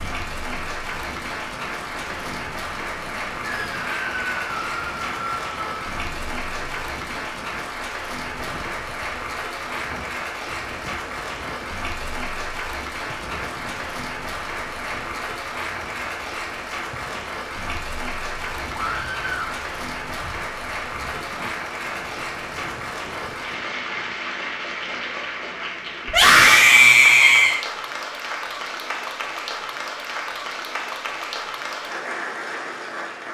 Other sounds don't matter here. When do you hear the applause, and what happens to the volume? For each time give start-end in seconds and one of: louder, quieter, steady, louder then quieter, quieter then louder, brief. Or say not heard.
0.0-33.2 steady.